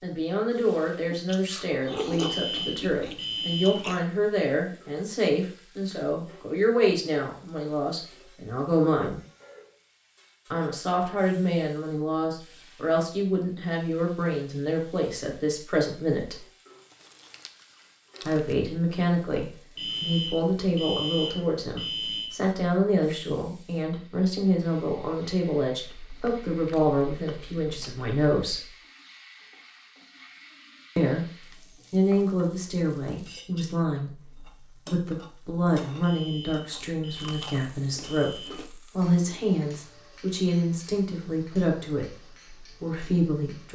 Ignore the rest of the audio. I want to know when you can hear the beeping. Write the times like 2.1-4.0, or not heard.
2.1-3.9, 19.8-22.3, 36.0-38.5.